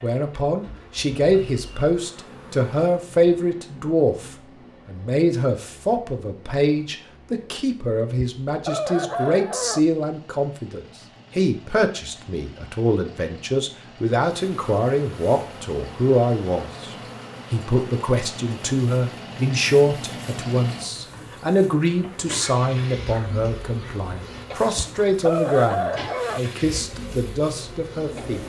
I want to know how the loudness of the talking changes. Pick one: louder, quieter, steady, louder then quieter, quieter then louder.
steady.